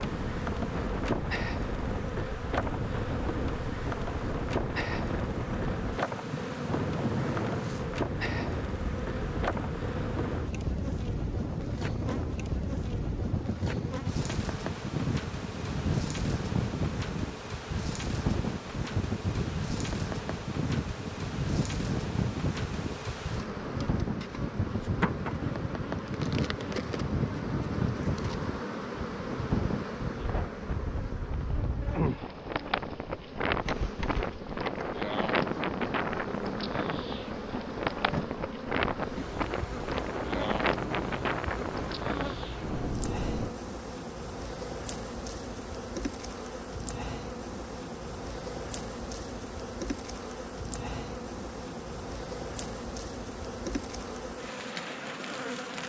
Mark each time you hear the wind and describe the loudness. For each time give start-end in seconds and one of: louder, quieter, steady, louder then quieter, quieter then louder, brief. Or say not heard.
0.0-43.5 steady.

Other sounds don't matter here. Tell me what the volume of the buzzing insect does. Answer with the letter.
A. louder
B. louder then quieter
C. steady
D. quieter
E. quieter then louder
C.